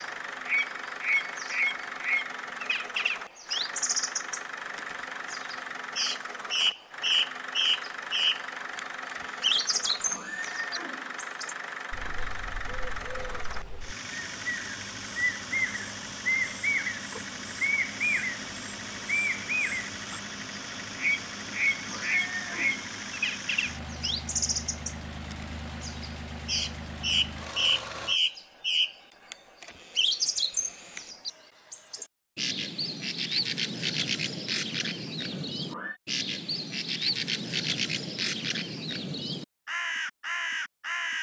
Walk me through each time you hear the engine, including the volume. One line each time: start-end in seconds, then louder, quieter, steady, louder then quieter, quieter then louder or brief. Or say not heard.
0.0-28.2 steady.